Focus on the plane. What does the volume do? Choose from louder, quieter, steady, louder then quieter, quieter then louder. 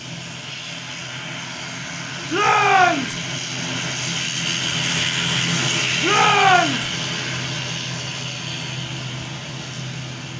louder then quieter.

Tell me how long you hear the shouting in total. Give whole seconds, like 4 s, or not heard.
2 s.